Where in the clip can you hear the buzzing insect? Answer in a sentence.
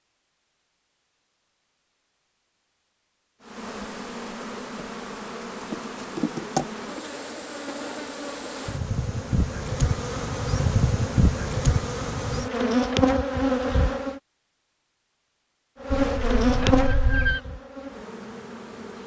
You can hear the buzzing insect from 3.4 to 14.2 s and from 15.8 to 19.0 s.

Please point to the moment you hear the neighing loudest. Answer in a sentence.
The volume of the neighing peaks at 17 seconds.